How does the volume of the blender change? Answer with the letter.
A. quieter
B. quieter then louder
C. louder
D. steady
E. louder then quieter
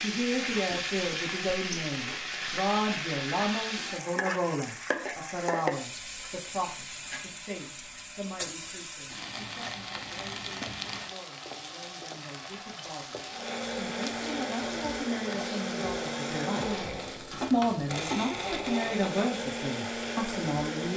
D.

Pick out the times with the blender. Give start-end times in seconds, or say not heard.
13.2-20.9.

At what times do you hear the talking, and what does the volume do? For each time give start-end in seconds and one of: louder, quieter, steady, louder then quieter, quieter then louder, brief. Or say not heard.
0.0-20.9 quieter then louder.